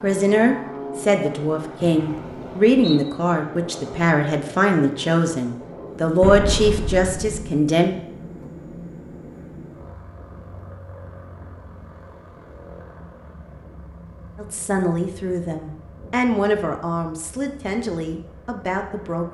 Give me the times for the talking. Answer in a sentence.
You can hear the talking from 0.0 to 8.0 s and from 14.3 to 19.2 s.